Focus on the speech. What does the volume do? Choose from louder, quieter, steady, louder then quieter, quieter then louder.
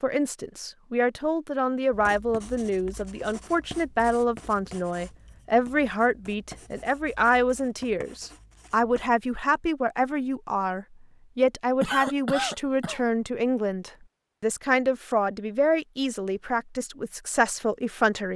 steady.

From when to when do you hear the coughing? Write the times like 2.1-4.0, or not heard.
11.8-13.0.